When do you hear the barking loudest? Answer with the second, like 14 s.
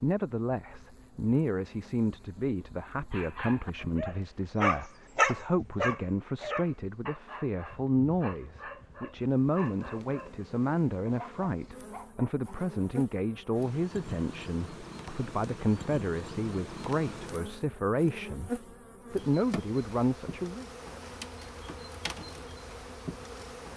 5 s.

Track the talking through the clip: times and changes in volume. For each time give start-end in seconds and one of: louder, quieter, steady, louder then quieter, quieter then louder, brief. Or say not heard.
0.0-20.6 steady.